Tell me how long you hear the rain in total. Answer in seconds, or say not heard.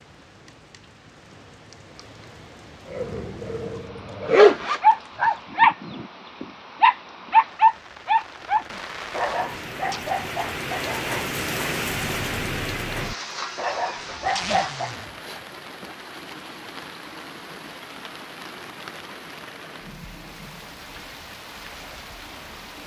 23 s.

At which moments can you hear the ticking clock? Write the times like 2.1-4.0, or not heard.
not heard.